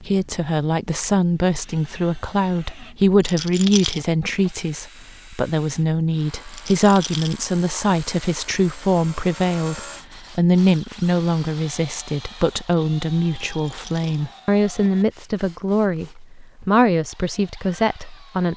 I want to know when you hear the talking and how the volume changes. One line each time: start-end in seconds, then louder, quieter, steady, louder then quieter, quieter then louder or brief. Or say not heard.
0.0-18.5 steady.